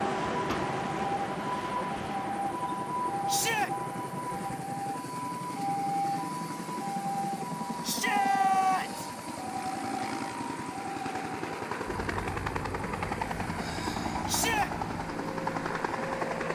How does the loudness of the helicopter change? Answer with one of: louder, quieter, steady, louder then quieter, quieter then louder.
louder.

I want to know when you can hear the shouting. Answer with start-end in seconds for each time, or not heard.
3.2-3.7, 7.8-9.1, 14.2-14.7.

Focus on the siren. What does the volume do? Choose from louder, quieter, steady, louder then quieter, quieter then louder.
quieter.